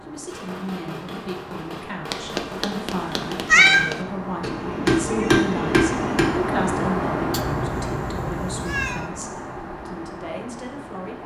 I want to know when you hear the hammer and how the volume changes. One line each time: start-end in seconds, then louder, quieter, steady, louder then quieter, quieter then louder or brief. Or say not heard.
0.2-6.2 louder.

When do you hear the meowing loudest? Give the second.
4 s.